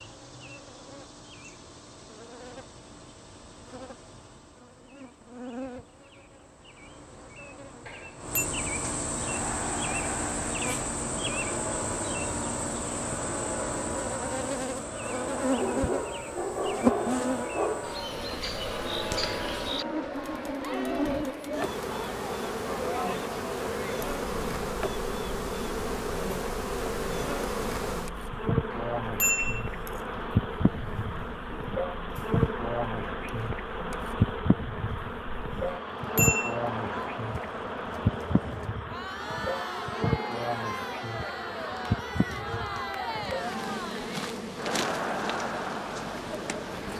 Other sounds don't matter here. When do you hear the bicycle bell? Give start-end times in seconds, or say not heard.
7.8-8.4, 28.7-29.7, 35.6-36.6.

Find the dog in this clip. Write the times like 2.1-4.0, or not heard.
15.6-17.9.